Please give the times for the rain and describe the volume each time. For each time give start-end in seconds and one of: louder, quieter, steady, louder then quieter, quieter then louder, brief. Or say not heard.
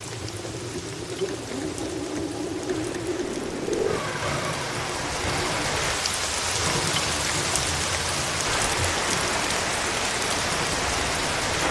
0.0-11.6 louder.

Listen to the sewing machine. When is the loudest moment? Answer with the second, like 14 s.
4 s.